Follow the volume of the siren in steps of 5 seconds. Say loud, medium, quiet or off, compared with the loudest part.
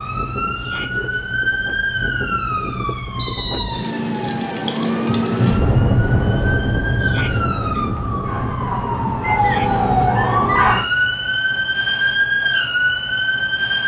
medium, medium, loud.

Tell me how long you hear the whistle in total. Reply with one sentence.
The whistle can be heard for 3 seconds in total.